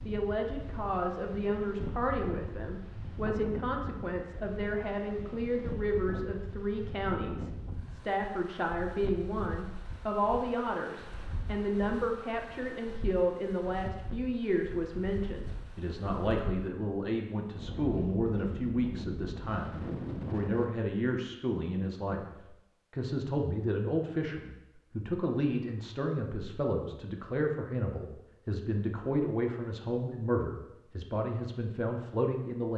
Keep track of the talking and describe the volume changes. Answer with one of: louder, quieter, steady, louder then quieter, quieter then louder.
steady.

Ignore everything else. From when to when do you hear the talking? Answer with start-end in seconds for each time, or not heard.
0.1-22.2, 22.9-32.7.